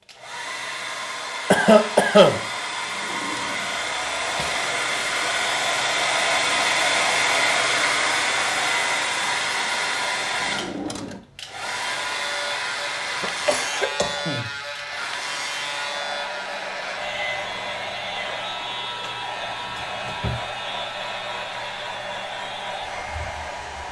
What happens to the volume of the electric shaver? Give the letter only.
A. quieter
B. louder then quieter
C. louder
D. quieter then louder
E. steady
A.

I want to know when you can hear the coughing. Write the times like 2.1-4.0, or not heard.
1.5-2.4, 13.1-14.5.